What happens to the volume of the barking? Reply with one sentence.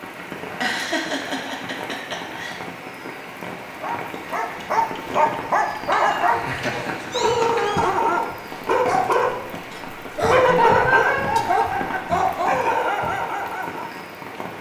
The loudness of the barking stays about the same.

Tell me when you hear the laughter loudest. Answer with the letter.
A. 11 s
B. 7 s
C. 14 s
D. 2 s
A.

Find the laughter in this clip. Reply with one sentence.
The laughter can be heard from 0.6 to 2.6 s, from 6.3 to 7.7 s and from 10.2 to 12.2 s.